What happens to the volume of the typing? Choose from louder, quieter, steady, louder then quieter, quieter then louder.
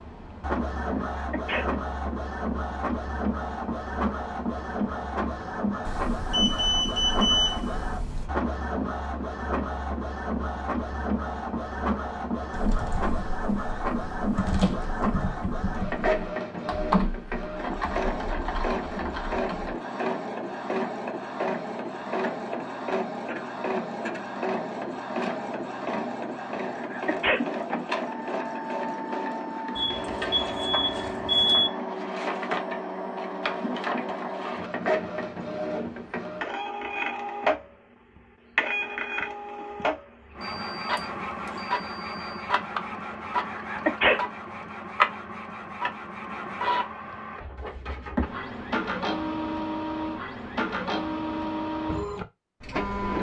louder then quieter.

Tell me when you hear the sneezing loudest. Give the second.
44 s.